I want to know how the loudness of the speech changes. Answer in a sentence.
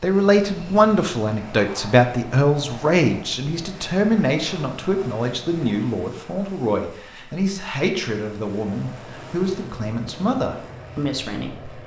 The volume of the speech goes down.